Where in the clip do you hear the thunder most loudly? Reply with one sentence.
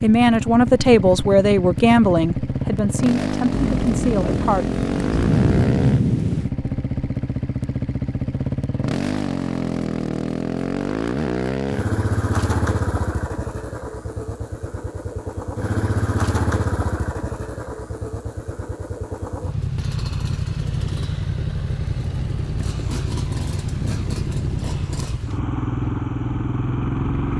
The volume of the thunder peaks at 6 seconds.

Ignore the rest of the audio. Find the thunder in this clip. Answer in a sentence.
The thunder can be heard from 3.5 to 6.5 s and from 22.0 to 25.2 s.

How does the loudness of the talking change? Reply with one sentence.
The loudness of the talking goes down.